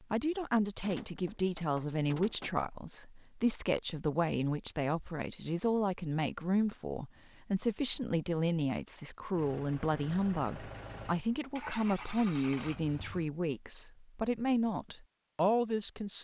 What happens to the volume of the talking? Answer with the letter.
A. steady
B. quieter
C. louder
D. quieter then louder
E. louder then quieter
A.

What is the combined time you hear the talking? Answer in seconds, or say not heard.
16 s.